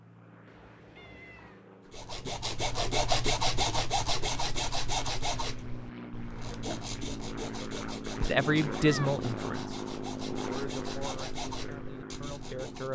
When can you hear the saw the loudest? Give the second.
3 s.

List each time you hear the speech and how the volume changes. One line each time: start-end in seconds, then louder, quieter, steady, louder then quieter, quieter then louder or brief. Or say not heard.
8.2-12.9 quieter.